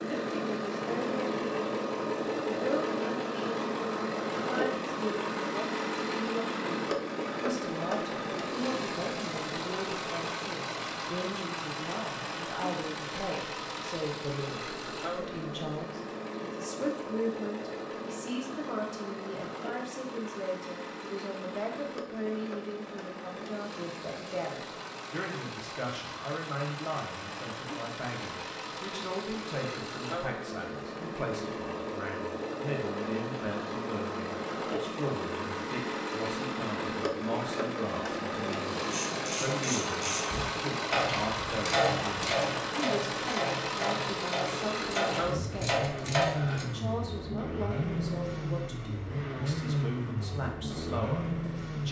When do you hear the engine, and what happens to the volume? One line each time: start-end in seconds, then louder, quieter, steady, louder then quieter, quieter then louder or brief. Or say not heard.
0.0-51.8 quieter then louder.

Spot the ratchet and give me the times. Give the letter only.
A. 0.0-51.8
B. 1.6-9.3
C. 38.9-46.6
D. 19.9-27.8
C.